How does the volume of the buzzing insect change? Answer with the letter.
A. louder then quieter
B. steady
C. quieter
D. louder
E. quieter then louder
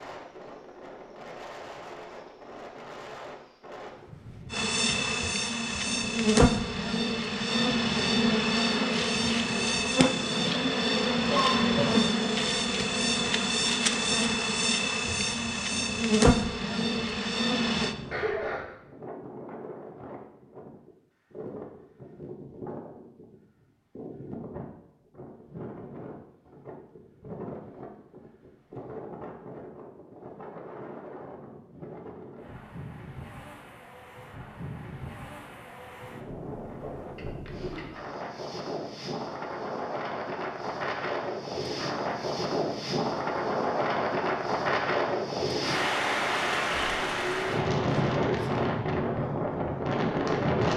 B.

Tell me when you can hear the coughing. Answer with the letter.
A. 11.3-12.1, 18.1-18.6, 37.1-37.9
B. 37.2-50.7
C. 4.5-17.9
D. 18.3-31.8
A.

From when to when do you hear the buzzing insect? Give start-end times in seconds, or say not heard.
4.5-17.9.